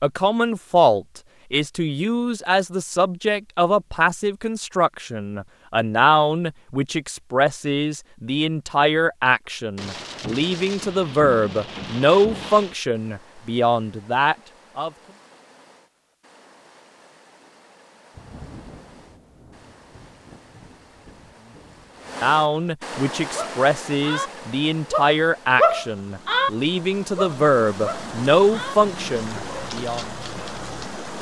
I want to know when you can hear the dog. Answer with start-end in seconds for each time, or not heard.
23.4-24.3, 24.9-26.5, 27.1-30.9.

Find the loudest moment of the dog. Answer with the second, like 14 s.
26 s.